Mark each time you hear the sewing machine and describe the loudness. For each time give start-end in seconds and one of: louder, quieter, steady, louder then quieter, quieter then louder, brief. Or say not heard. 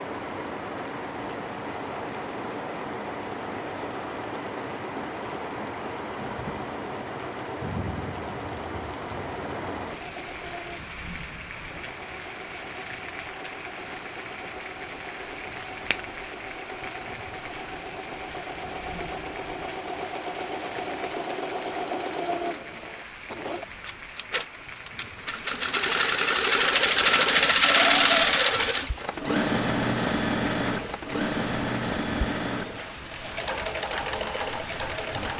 0.0-35.3 louder.